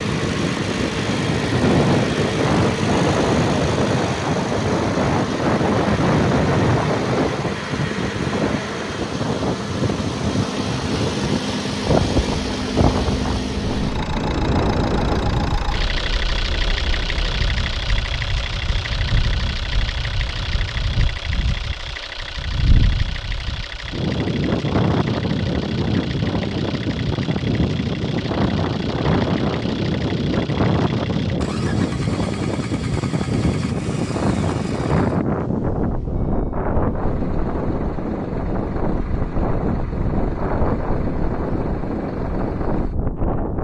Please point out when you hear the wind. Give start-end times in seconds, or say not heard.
0.0-43.5.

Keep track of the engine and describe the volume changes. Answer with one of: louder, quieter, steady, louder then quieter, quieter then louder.
quieter.